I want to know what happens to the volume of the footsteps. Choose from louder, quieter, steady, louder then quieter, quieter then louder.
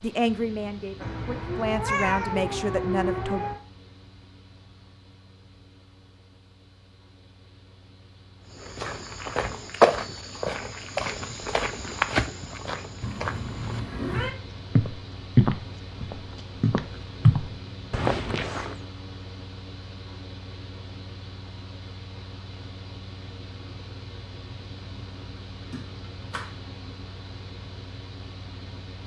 quieter then louder.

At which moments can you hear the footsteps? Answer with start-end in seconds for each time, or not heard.
8.6-18.8.